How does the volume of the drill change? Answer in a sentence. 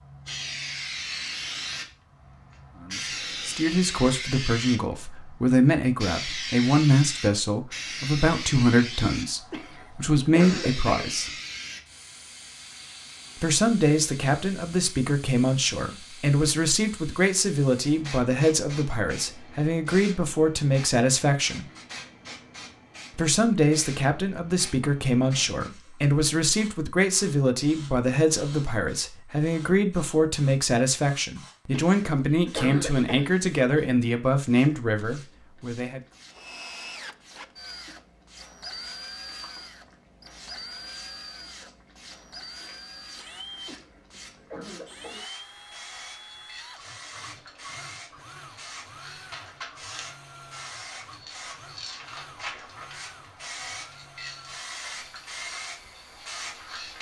The loudness of the drill goes down.